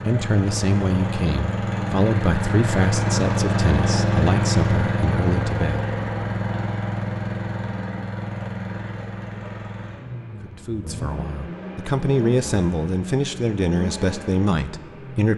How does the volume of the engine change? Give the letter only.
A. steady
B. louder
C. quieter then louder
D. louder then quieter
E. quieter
E.